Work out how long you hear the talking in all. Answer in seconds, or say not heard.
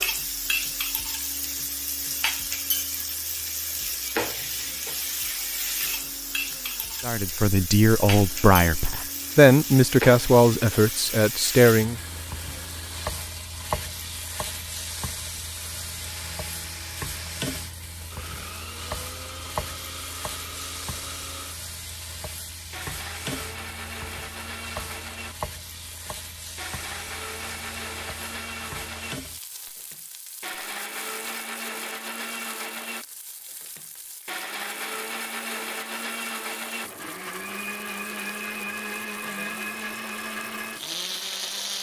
5 s.